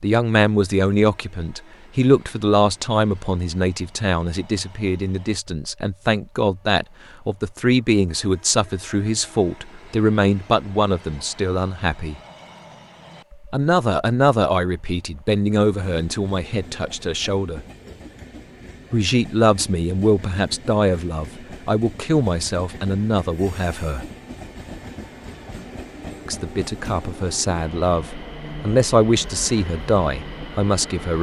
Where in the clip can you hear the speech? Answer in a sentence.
You can hear the speech from 0.0 to 12.2 s, from 13.5 to 17.6 s, from 18.9 to 24.1 s and from 26.2 to 31.1 s.